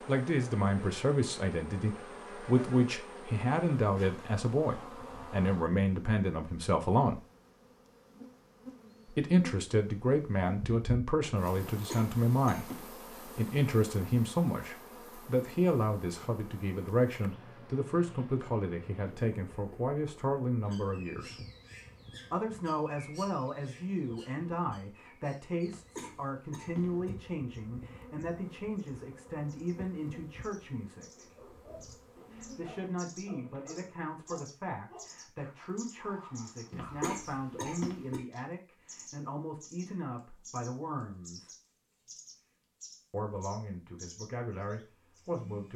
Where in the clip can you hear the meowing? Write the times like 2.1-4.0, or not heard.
not heard.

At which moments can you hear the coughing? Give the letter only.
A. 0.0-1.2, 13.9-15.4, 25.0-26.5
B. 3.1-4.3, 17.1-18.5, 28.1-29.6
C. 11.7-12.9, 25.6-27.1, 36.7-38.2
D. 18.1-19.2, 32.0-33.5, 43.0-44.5
C.